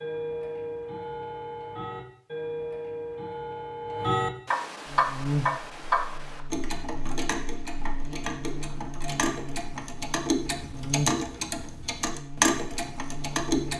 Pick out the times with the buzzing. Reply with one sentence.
You can hear the buzzing from 4.8 to 13.7 s.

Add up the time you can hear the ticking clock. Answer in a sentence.
You can hear the ticking clock for 14 seconds altogether.